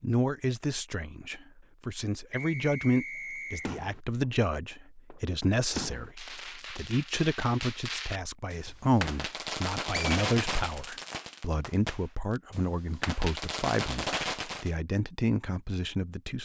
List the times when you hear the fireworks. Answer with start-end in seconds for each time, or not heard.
3.6-14.7.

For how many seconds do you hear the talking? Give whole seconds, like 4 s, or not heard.
16 s.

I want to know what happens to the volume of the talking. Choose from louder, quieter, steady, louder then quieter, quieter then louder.
steady.